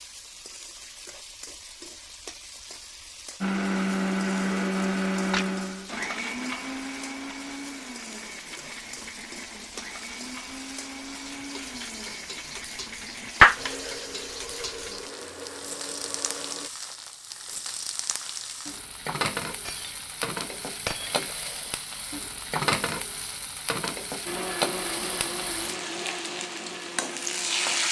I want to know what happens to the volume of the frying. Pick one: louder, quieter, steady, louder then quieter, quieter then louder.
louder.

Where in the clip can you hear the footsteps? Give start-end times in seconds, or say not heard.
not heard.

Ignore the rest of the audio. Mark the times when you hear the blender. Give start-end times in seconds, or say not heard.
3.4-16.7, 24.2-27.8.